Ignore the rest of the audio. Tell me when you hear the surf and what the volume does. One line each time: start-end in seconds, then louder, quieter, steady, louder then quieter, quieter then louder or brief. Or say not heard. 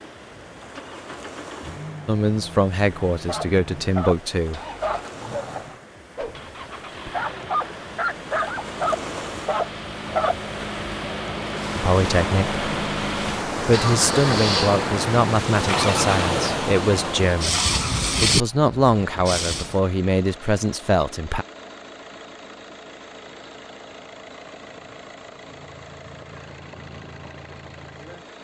0.0-19.8 louder.